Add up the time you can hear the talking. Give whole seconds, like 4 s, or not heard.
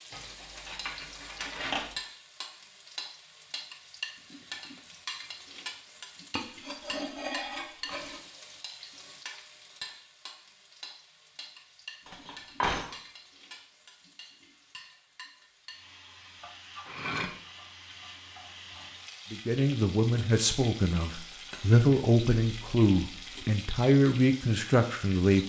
6 s.